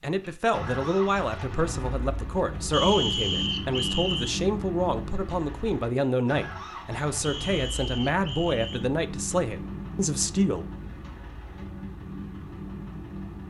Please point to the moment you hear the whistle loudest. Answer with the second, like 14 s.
3 s.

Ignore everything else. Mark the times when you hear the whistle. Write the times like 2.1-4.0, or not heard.
2.7-4.3, 7.2-8.8.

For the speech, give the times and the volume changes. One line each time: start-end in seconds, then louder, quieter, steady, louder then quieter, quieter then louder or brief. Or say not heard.
0.0-10.7 steady.